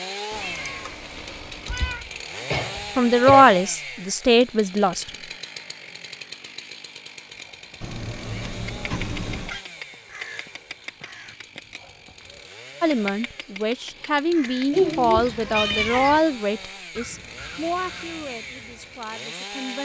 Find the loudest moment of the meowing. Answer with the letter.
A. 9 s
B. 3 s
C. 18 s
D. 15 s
D.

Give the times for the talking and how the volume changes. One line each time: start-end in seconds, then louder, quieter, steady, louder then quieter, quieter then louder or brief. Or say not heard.
3.0-5.0 brief
12.8-19.7 quieter.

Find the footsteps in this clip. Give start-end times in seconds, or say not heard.
not heard.